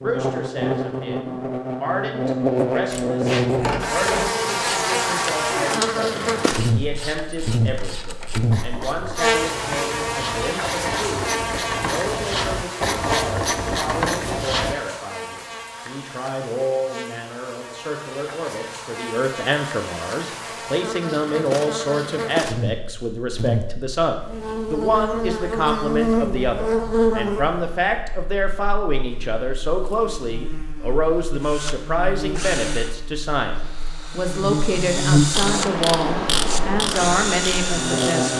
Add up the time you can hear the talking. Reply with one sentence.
The talking can be heard for 38 seconds in total.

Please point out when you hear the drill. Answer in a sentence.
You can hear the drill from 31.4 to 38.3 s.